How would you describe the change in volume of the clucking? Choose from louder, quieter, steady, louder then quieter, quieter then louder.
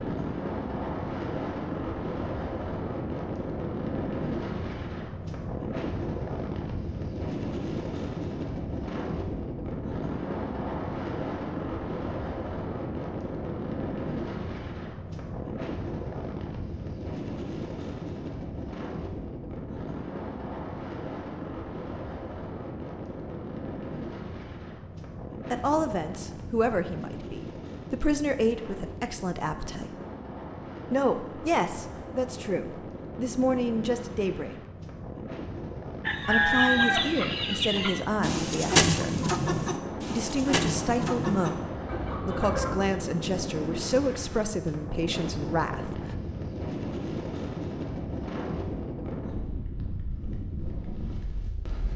quieter.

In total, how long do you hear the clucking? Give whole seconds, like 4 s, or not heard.
7 s.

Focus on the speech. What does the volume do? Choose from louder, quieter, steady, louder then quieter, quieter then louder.
steady.